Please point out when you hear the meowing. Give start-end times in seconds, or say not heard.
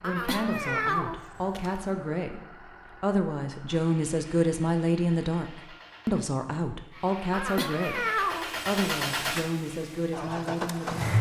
0.0-1.9, 7.3-8.7.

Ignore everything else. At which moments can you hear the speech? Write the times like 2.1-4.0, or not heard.
0.0-11.1.